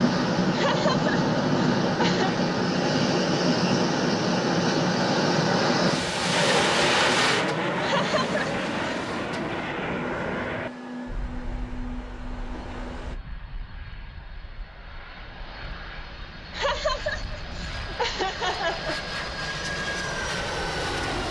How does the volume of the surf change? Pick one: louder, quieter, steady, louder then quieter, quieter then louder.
quieter.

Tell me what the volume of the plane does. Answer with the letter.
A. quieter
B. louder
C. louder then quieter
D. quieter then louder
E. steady
D.